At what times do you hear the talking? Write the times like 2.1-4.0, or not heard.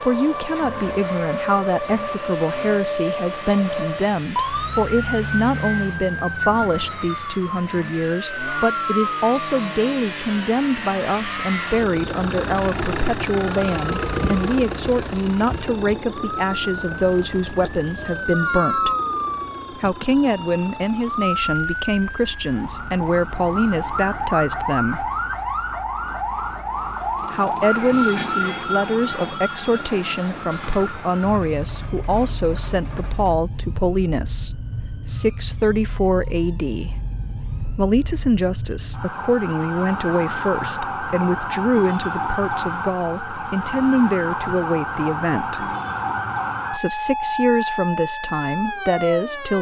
0.0-18.9, 19.7-25.1, 27.3-37.0, 37.8-45.6, 46.7-49.5.